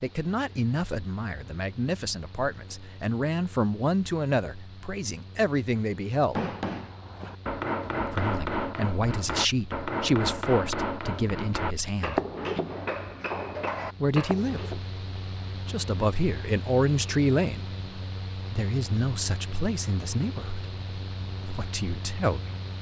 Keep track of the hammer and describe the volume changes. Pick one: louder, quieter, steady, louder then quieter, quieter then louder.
steady.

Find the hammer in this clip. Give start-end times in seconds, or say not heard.
6.3-14.8.